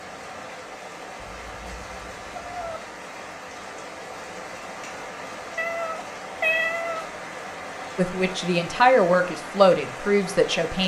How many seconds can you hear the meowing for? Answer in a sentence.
The meowing can be heard for 3 seconds in total.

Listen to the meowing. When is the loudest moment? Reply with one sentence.
The volume of the meowing peaks at 7 seconds.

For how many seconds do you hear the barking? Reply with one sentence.
You can't hear the barking here.